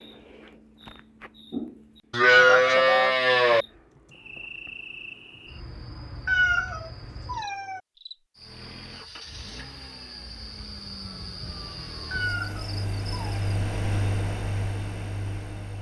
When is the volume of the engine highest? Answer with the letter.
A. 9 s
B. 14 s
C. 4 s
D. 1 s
B.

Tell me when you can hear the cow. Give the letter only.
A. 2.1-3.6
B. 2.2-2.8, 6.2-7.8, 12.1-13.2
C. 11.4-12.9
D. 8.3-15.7
A.